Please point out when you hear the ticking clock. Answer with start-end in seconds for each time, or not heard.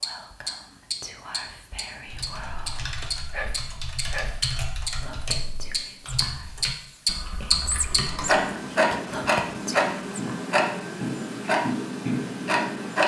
0.0-13.0.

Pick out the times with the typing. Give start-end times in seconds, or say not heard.
2.0-8.3.